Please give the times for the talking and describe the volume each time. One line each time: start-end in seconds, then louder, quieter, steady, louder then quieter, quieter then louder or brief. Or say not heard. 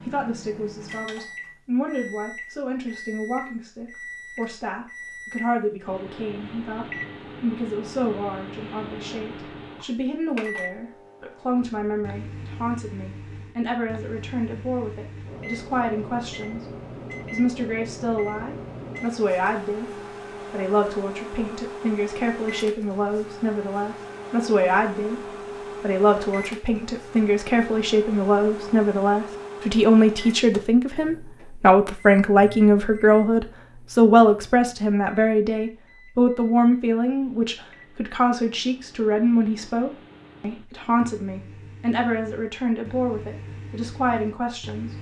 0.0-16.6 steady
17.3-44.9 louder then quieter.